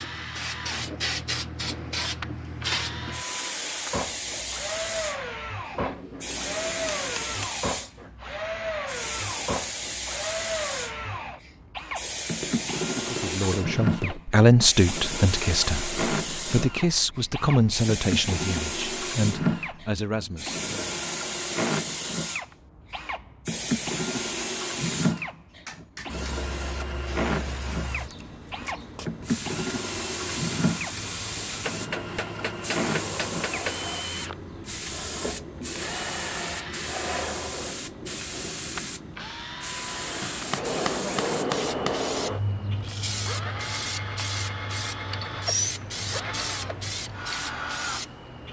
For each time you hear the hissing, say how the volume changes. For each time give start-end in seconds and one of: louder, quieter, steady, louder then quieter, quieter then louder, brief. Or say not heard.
0.0-48.4 steady.